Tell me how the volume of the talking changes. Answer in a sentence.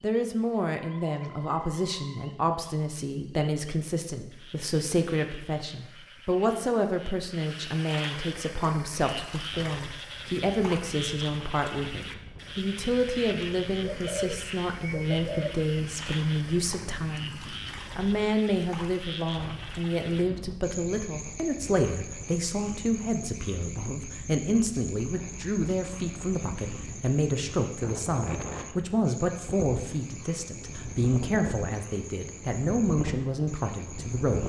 The loudness of the talking stays about the same.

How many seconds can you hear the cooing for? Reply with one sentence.
The cooing can be heard for 2 seconds in total.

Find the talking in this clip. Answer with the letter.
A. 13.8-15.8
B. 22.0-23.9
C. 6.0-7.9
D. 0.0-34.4
D.